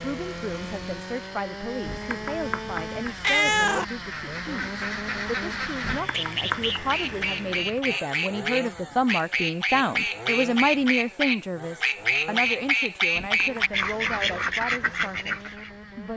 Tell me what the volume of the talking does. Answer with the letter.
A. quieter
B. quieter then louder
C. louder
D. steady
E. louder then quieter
E.